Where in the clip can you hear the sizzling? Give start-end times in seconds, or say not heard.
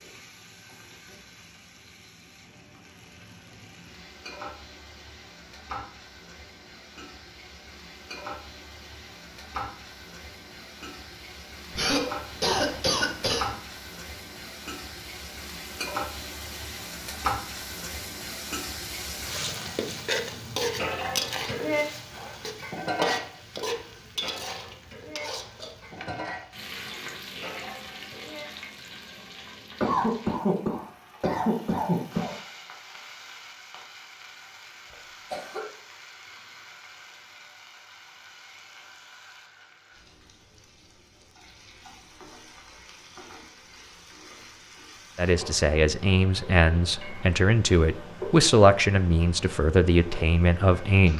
0.0-51.1.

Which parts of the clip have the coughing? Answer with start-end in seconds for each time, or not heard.
11.8-13.6, 29.8-32.4, 34.9-35.7.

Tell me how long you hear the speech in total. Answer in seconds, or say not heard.
6 s.